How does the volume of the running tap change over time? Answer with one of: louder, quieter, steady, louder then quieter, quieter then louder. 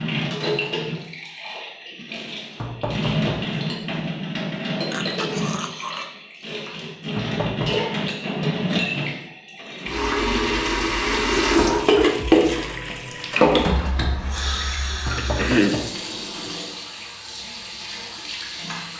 louder then quieter.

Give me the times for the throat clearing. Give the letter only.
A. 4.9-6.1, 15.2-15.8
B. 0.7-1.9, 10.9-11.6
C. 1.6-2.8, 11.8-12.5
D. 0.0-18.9
A.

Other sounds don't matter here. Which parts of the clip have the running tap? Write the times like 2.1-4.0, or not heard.
0.0-18.9.